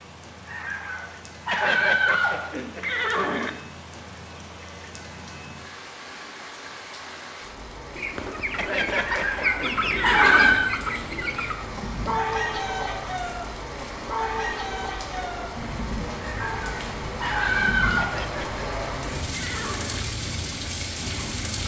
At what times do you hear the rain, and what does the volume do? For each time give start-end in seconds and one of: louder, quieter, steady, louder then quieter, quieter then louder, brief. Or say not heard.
0.0-21.6 louder.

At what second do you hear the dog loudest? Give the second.
10 s.